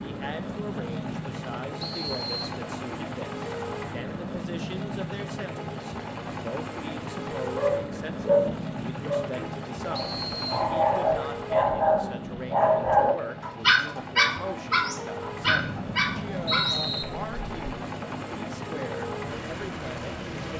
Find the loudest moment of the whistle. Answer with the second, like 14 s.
17 s.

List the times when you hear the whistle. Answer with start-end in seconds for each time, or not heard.
1.8-2.6, 9.9-10.7, 15.4-17.1.